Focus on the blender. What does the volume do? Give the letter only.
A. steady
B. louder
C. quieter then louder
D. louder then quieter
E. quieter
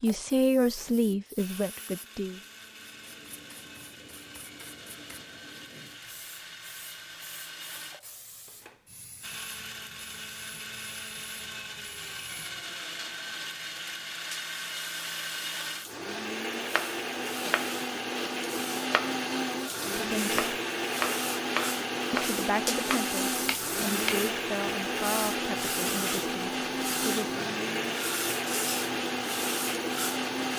B.